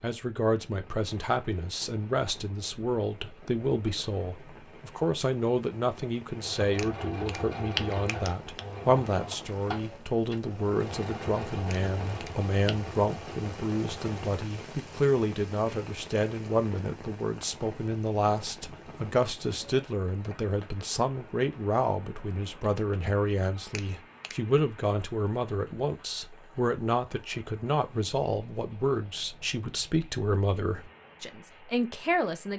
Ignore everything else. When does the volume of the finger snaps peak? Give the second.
8 s.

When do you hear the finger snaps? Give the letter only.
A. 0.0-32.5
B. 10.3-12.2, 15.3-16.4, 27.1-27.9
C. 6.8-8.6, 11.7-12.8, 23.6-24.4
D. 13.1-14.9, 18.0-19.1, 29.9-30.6
C.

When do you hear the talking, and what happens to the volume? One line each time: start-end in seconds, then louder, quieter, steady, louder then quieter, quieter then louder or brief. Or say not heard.
0.0-32.5 steady.